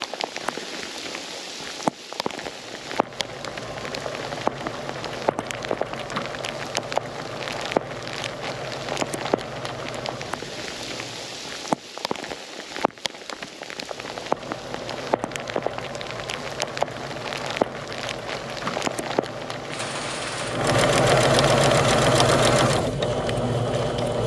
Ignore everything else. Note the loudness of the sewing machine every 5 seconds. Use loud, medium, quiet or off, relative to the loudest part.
quiet, quiet, quiet, quiet, loud.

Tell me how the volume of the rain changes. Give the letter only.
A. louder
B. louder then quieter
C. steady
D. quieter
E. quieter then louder
C.